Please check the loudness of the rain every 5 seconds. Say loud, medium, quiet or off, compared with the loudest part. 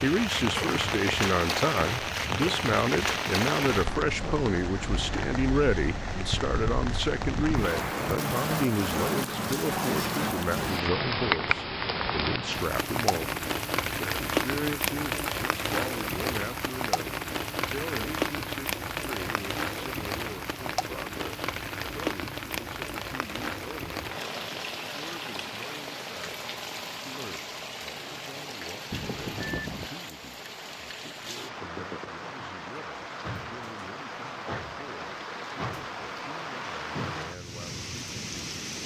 loud, loud, loud, loud, medium, medium, medium, medium.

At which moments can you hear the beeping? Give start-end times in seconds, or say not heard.
28.9-29.9.